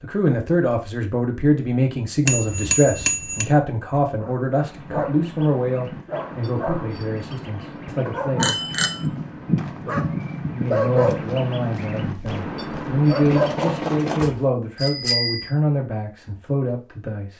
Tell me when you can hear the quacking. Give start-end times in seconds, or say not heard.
4.5-14.4.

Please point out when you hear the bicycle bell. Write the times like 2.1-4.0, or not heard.
2.2-3.5, 8.4-9.1, 13.2-15.5.